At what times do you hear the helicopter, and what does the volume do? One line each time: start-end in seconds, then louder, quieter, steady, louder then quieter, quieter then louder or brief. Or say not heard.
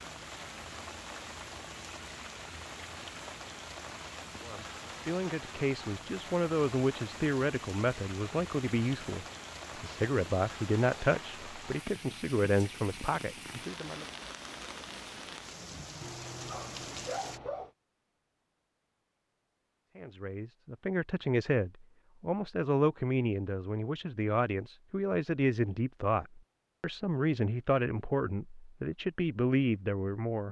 not heard.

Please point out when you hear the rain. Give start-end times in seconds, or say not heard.
0.0-17.4.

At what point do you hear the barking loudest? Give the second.
17 s.